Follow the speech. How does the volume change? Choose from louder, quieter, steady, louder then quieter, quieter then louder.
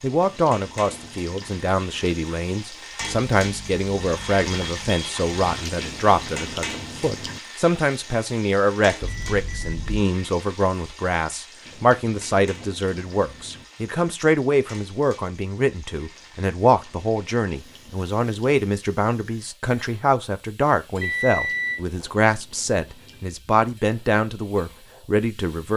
steady.